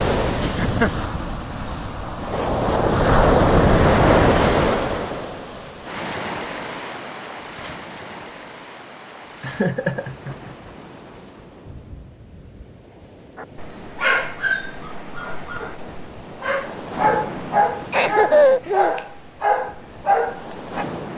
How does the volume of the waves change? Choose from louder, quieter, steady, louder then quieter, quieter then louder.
quieter then louder.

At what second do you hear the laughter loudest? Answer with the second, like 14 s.
18 s.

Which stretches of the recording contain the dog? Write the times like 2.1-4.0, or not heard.
13.3-20.9.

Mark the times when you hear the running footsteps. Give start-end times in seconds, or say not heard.
not heard.